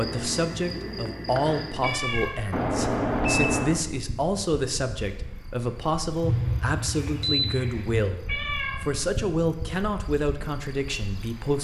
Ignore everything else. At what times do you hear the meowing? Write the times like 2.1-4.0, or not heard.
1.8-2.4, 8.2-8.8.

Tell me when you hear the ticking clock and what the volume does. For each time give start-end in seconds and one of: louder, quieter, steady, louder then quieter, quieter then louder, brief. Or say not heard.
not heard.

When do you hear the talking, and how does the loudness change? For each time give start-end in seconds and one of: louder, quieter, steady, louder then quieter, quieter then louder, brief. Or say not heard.
0.0-11.5 steady.